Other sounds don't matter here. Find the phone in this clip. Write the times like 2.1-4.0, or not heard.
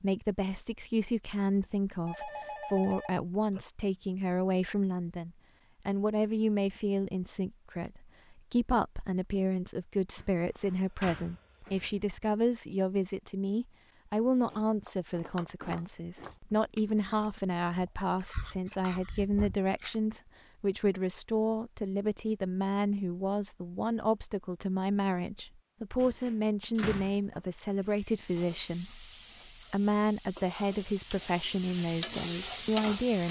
1.6-3.6.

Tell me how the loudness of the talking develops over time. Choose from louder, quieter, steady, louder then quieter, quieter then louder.
steady.